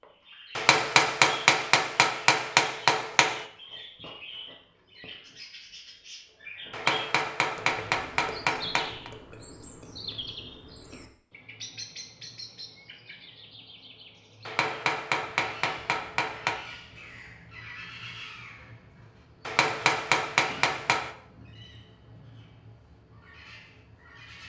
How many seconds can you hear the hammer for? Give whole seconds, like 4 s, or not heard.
9 s.